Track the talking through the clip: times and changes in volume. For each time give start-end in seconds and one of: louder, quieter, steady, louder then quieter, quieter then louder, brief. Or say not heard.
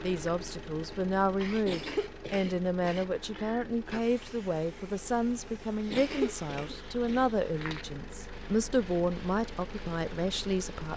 0.0-10.9 steady.